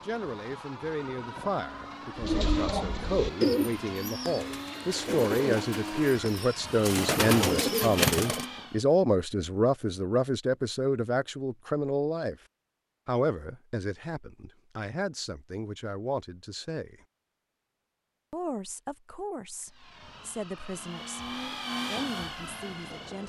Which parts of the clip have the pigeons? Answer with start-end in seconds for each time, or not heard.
2.1-8.4.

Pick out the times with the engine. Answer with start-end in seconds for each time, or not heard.
0.0-8.8, 19.6-23.2.